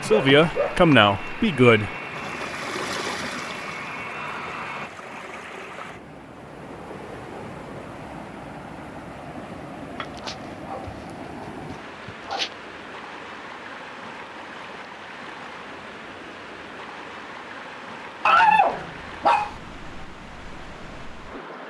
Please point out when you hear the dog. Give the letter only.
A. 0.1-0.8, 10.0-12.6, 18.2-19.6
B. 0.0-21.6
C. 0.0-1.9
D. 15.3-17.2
A.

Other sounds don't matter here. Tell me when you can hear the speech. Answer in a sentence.
You can hear the speech from 0.0 to 1.9 s.